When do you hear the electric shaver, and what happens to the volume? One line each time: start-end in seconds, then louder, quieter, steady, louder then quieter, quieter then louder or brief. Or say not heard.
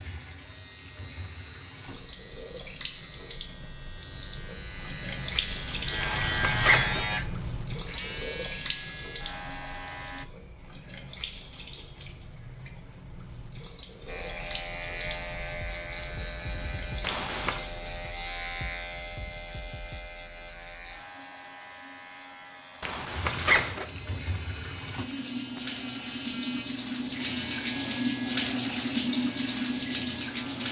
0.0-10.2 louder then quieter
14.1-30.6 quieter then louder.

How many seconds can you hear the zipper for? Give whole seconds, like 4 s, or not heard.
3 s.